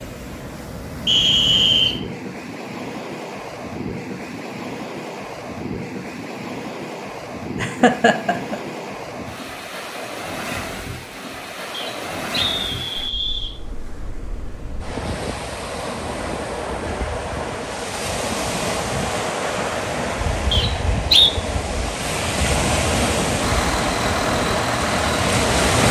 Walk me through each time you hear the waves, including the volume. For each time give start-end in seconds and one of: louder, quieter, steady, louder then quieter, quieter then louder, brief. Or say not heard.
0.0-25.8 louder.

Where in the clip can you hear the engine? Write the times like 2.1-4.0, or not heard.
23.4-25.8.